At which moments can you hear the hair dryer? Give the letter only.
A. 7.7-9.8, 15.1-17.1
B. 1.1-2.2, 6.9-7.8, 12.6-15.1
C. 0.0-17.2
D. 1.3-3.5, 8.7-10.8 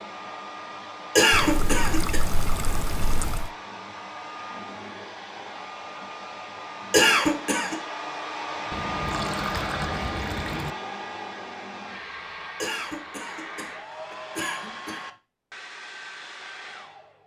C.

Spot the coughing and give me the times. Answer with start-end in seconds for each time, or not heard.
1.1-2.2, 6.9-7.8, 12.6-15.1.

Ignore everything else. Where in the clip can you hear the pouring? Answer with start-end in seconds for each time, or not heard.
1.3-3.5, 8.7-10.8.